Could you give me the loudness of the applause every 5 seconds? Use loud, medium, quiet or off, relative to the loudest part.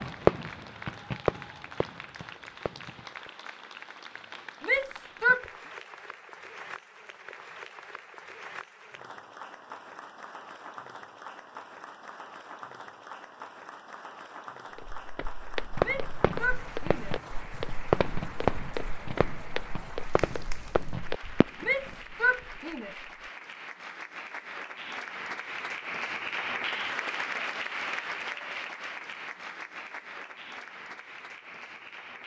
medium, medium, medium, medium, medium, loud, medium.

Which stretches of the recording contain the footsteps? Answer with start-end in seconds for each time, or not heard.
14.8-21.5.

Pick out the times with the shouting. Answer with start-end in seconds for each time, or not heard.
4.7-5.5, 15.8-17.2, 21.6-22.9.